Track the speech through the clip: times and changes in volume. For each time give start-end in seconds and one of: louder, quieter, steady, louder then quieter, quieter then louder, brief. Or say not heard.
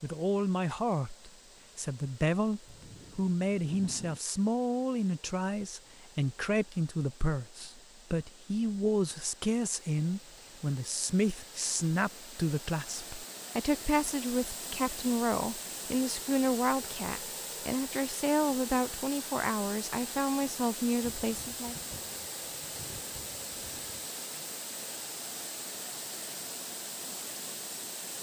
0.0-21.8 steady.